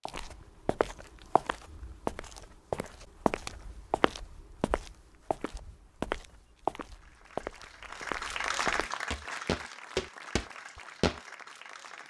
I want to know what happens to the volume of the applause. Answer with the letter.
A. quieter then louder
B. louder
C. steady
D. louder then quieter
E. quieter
D.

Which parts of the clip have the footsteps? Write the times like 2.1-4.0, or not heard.
0.1-11.2.